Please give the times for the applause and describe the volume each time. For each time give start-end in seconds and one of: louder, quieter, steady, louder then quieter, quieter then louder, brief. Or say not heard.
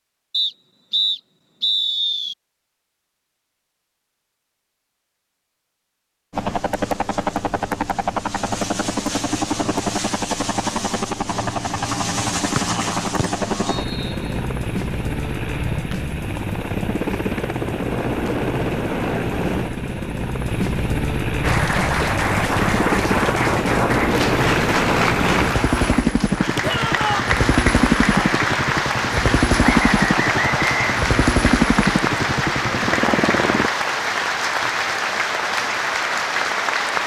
21.4-37.0 steady.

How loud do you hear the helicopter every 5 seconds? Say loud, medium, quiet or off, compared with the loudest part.
off, loud, loud, loud, loud, loud, loud, off.